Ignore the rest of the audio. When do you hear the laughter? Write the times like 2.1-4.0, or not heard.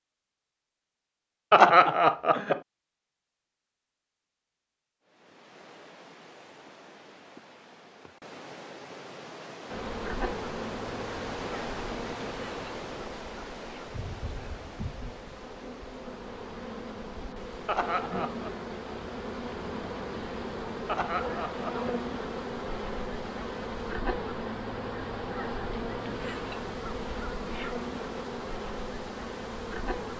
1.5-2.6, 17.6-18.5, 20.9-21.9.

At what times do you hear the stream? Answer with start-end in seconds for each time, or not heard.
5.0-30.1.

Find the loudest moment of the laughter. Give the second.
2 s.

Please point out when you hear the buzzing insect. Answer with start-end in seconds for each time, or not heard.
9.7-30.1.